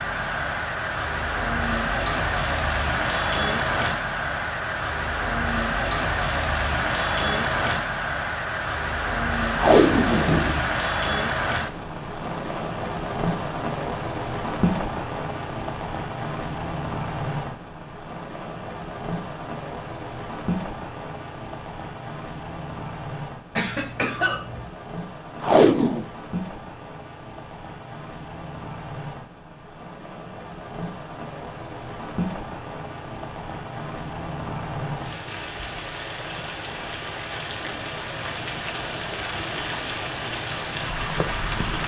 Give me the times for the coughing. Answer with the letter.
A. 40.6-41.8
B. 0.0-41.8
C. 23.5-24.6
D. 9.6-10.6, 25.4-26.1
C.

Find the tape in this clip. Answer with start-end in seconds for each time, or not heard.
9.6-10.6, 25.4-26.1.